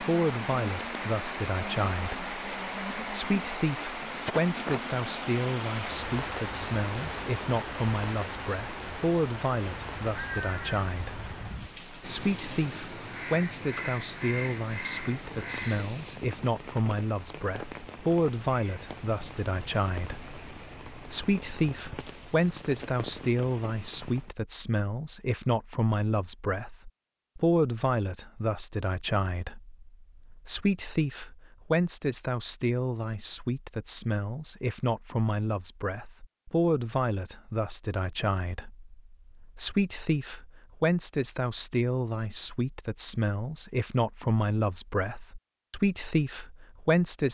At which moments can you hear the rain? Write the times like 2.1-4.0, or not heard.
0.0-24.4.